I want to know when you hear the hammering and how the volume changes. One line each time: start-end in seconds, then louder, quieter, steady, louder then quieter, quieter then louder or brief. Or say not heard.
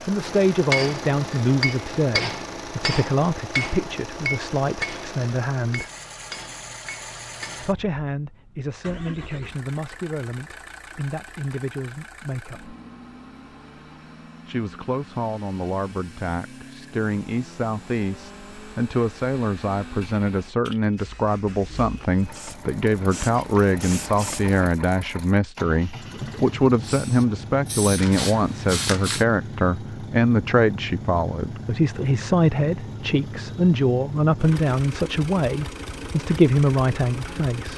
0.2-7.8 quieter.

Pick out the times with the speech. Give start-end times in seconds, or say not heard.
0.0-5.9, 7.6-12.8, 14.4-37.7.